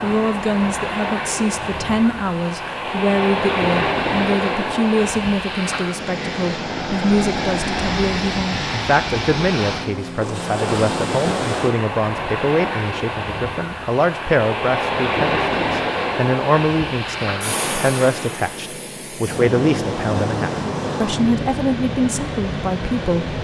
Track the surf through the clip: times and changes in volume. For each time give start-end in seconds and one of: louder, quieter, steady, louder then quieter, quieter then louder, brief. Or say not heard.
0.0-23.4 steady.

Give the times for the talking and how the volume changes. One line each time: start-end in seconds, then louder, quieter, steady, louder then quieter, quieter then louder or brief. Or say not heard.
0.0-23.2 steady.